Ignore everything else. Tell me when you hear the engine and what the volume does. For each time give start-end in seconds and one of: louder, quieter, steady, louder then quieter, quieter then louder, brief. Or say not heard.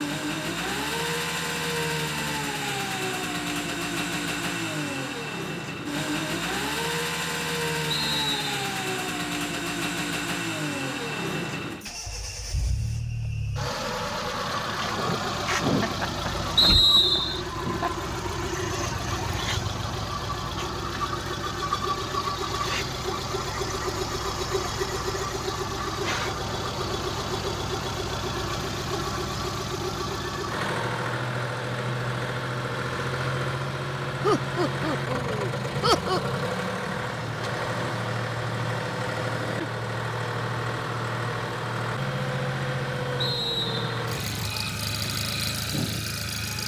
0.0-46.6 steady.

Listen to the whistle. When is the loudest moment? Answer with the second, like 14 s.
17 s.